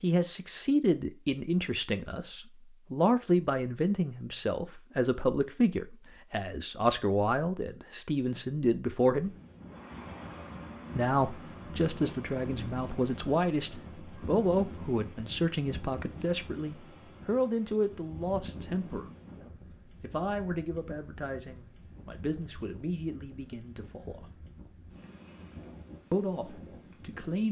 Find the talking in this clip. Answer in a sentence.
You can hear the talking from 0.0 to 9.3 s, from 10.9 to 19.1 s, from 20.0 to 24.2 s and from 26.1 to 27.4 s.